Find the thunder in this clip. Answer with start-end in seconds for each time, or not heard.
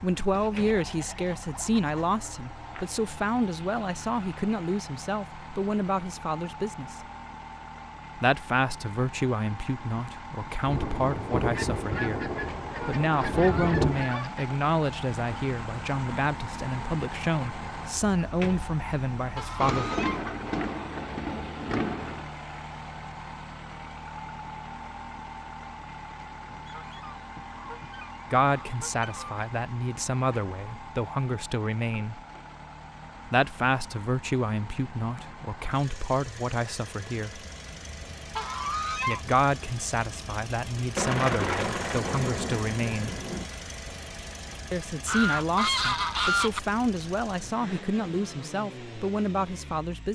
10.7-14.1, 19.6-22.2, 41.0-43.5.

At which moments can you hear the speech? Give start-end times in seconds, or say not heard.
0.0-7.0, 8.2-19.9, 28.3-32.2, 33.2-37.5, 39.0-43.2, 44.7-50.1.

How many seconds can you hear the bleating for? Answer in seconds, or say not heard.
not heard.